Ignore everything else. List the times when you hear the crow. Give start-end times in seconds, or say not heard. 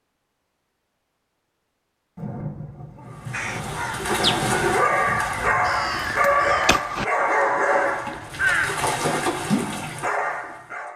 3.3-8.8.